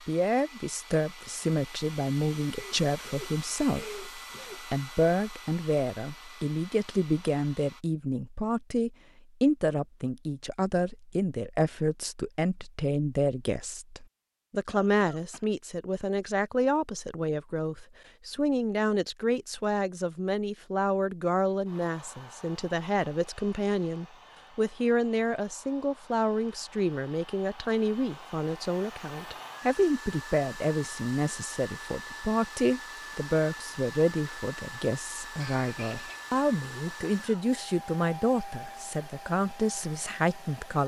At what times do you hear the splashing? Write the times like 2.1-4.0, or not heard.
not heard.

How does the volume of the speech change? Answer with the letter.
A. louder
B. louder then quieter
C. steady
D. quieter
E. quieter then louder
C.